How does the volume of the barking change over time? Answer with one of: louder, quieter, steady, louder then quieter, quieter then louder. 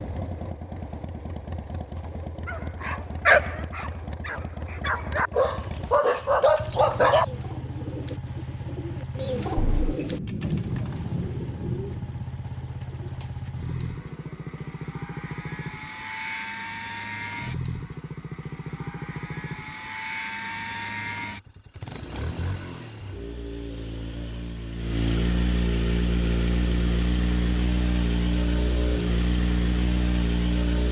quieter then louder.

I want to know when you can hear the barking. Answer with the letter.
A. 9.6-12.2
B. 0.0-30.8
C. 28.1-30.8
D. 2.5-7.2
D.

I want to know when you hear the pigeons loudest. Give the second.
9 s.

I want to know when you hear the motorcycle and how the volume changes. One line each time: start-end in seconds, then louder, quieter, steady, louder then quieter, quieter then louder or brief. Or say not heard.
0.0-30.8 louder.